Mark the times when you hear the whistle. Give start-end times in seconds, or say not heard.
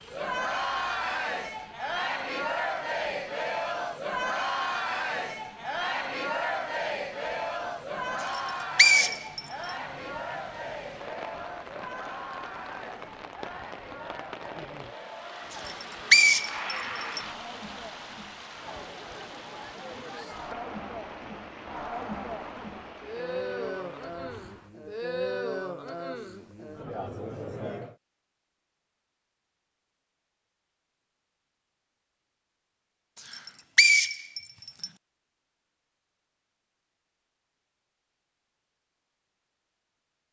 8.2-9.4, 15.6-17.2, 33.2-34.9.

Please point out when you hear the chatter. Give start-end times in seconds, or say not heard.
0.1-27.9.